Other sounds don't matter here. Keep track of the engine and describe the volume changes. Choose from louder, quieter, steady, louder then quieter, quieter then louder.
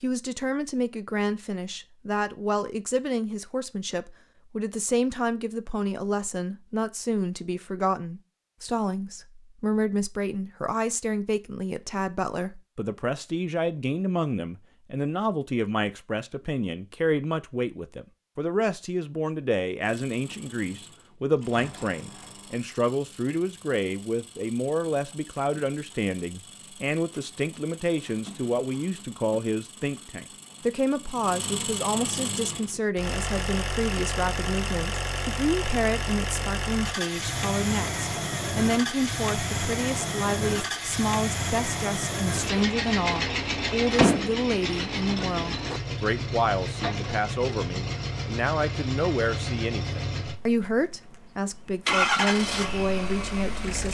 louder.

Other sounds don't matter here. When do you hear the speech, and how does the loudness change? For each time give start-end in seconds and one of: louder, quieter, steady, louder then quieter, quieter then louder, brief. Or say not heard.
0.0-53.8 steady.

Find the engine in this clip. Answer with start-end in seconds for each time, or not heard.
19.8-53.8.